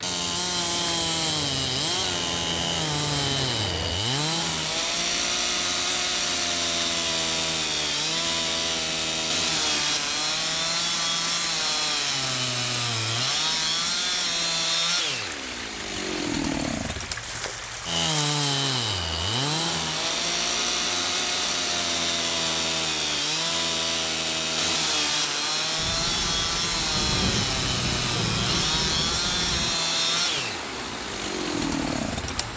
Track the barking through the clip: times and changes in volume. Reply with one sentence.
The barking can't be heard in this clip.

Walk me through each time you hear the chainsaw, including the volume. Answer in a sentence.
You can hear the chainsaw from 0.0 to 32.5 s, at a steady volume.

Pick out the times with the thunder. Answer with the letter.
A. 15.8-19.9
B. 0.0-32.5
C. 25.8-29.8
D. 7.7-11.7
C.